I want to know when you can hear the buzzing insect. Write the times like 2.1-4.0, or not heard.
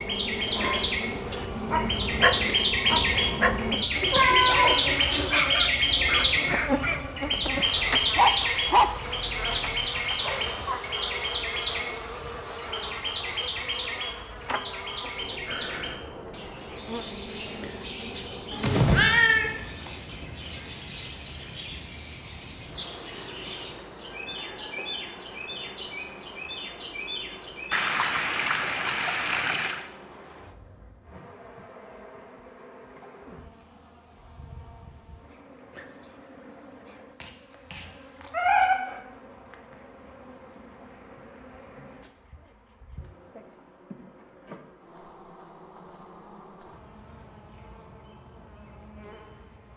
0.0-49.7.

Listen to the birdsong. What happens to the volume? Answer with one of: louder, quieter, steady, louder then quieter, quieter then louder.
quieter.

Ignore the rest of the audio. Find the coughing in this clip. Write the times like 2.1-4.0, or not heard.
not heard.